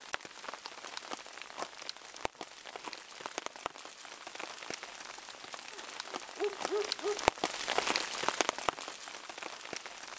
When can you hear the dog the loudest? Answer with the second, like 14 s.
7 s.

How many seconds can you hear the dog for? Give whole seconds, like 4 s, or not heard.
3 s.